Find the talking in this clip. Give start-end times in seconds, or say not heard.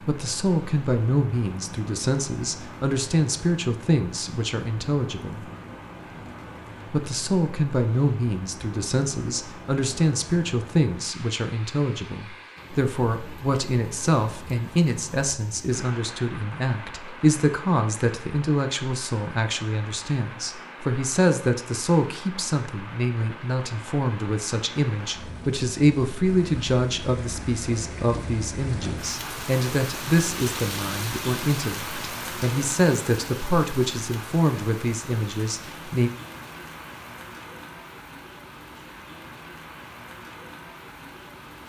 0.1-5.5, 6.9-36.1.